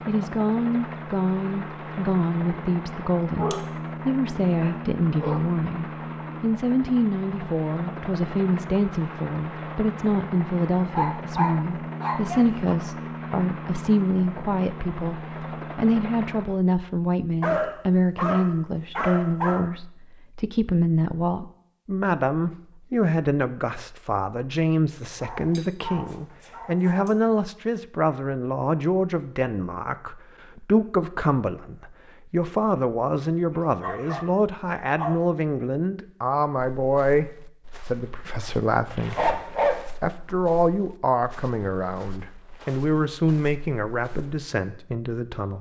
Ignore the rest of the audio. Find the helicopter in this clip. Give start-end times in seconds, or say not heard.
0.0-16.6.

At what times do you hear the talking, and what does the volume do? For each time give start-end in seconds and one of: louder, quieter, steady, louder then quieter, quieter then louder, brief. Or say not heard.
0.1-45.5 steady.